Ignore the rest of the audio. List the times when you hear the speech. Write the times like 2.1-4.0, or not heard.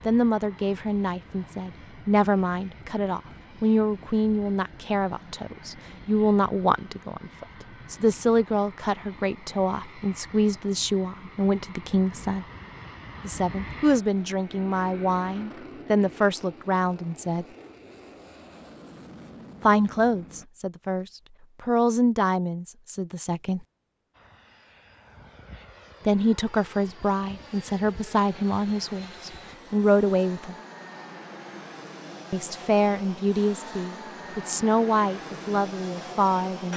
0.1-12.4, 13.2-17.4, 19.6-23.6, 26.1-30.6, 32.3-36.7.